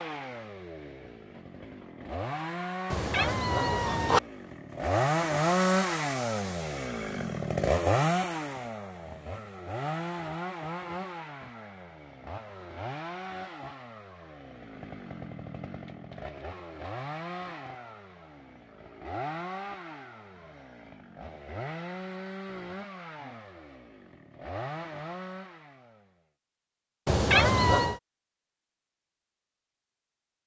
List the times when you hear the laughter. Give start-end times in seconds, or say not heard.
not heard.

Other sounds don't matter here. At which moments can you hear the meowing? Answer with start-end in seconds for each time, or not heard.
2.9-4.2, 27.1-28.0.